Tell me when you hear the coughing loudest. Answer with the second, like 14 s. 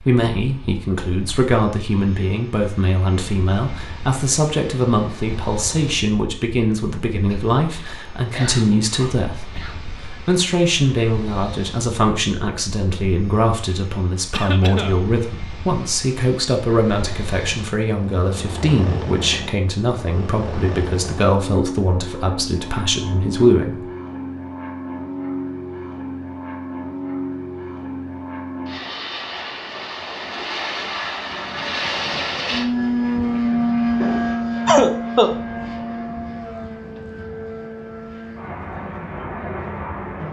35 s.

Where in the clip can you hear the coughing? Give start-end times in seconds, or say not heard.
7.2-9.9, 14.3-15.0, 34.0-35.4.